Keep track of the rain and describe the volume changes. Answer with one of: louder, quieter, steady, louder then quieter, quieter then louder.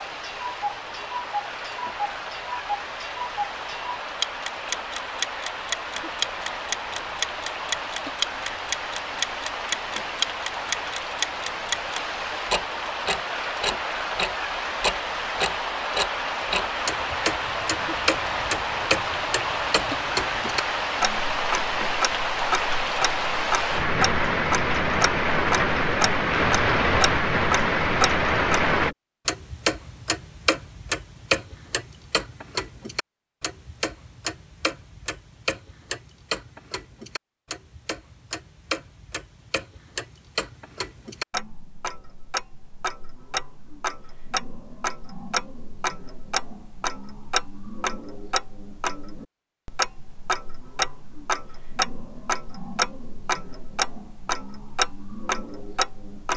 louder.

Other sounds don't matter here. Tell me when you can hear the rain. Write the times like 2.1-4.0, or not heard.
0.0-28.9.